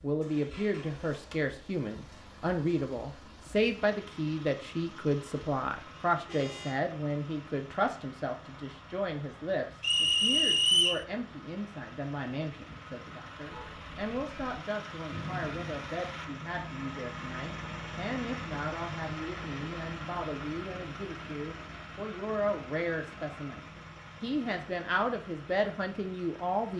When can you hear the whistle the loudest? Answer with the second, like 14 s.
11 s.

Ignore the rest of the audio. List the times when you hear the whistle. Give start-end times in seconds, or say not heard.
9.8-11.1, 15.1-15.7.